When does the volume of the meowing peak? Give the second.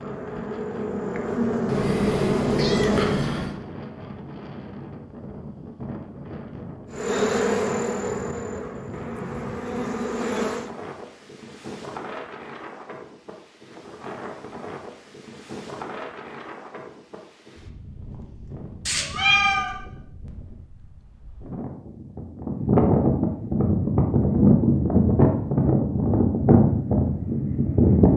19 s.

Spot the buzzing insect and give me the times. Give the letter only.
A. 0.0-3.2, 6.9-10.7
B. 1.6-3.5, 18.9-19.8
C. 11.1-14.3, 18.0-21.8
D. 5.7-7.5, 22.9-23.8
A.